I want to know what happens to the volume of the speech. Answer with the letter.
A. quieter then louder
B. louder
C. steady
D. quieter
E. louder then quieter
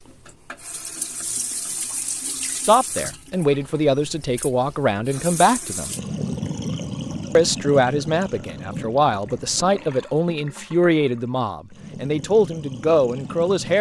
C.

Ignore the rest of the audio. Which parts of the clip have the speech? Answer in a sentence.
You can hear the speech from 2.6 to 5.9 s and from 7.3 to 13.7 s.